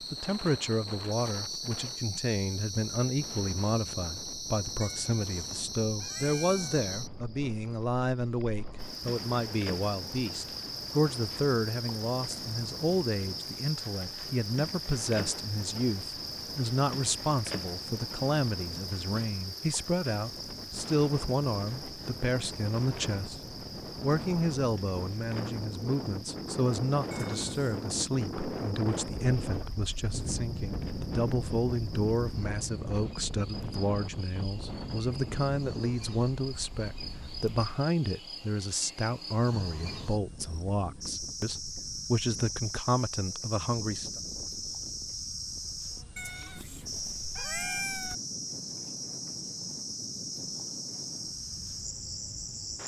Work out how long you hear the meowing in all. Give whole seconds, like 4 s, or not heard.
5 s.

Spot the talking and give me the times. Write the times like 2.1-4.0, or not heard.
0.0-44.2.